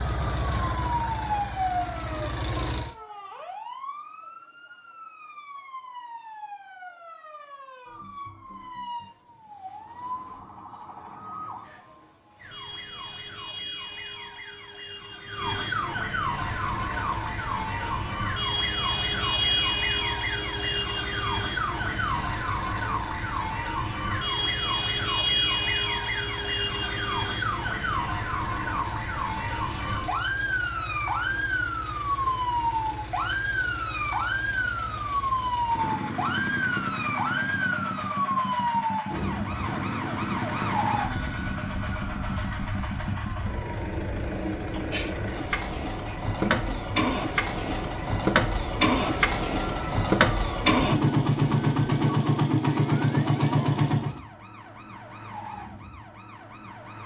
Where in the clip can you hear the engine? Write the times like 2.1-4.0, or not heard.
0.0-3.0, 16.4-54.2.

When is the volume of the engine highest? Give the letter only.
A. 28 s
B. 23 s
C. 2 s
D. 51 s
D.